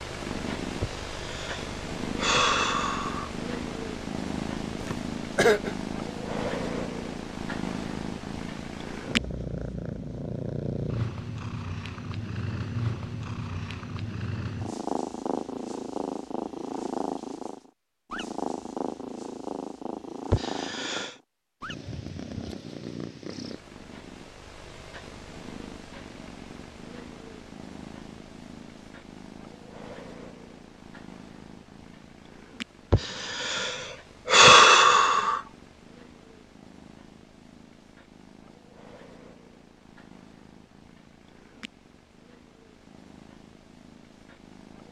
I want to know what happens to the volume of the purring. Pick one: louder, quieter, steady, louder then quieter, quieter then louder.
quieter.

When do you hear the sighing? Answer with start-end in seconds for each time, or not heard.
0.8-3.3, 20.3-21.1, 32.9-35.4.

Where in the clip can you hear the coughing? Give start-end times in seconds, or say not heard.
4.8-5.8.